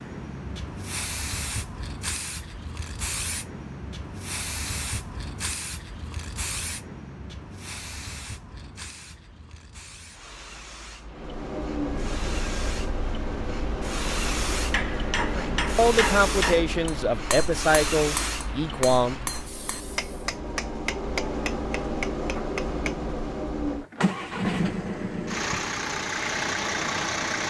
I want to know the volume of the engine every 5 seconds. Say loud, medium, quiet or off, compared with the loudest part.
off, off, medium, medium, loud, loud.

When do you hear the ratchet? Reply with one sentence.
The ratchet can't be heard in this clip.